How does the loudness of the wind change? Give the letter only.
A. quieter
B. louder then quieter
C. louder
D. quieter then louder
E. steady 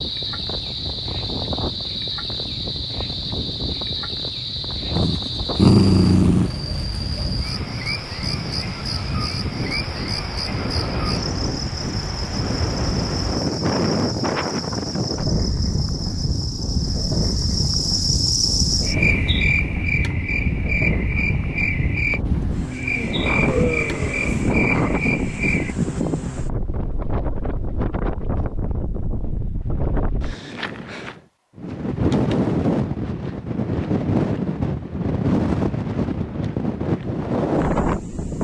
C.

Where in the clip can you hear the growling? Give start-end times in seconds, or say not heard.
5.0-6.5, 23.1-25.0.